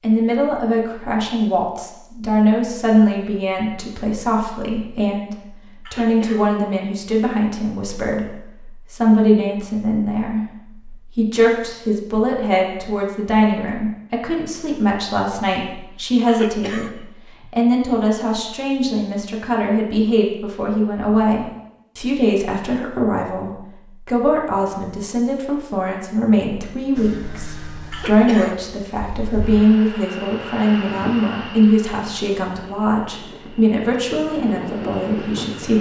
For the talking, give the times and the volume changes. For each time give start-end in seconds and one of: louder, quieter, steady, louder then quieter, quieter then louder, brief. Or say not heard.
0.0-35.7 steady.